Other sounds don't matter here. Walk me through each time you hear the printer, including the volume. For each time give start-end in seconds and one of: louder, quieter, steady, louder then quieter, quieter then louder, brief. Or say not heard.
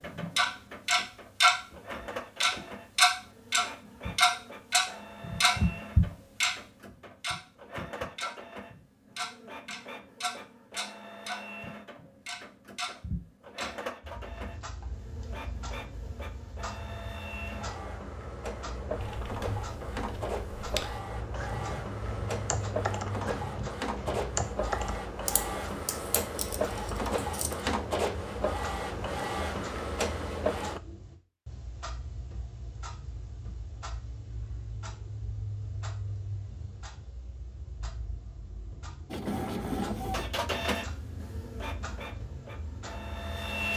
0.0-30.8 louder
39.1-43.7 quieter.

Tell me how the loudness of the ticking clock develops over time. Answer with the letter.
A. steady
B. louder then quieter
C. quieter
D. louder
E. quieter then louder
C.